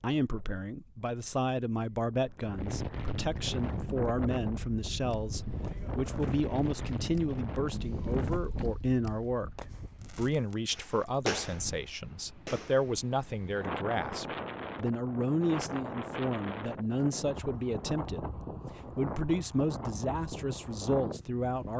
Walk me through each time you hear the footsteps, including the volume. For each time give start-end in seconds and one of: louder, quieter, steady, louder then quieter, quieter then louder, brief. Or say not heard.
not heard.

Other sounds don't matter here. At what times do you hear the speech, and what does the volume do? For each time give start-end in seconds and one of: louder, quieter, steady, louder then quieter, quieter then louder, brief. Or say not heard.
0.0-21.7 steady.